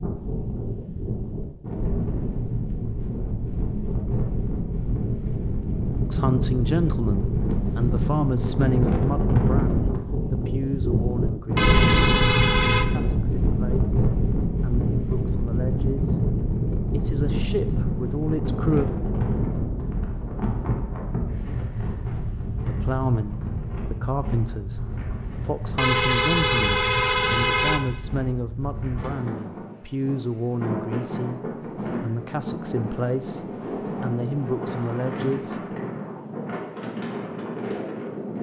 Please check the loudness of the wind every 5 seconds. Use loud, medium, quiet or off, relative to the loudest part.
medium, loud, loud, loud, medium, medium, medium, medium.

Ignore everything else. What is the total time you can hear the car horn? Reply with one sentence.
You can hear the car horn for 3 seconds altogether.